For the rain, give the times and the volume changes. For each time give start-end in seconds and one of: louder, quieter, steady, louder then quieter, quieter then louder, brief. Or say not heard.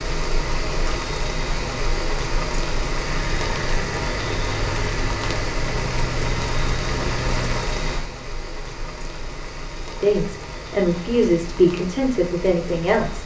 0.0-13.2 quieter.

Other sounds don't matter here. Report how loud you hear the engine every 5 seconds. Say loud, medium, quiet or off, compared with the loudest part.
loud, loud, off.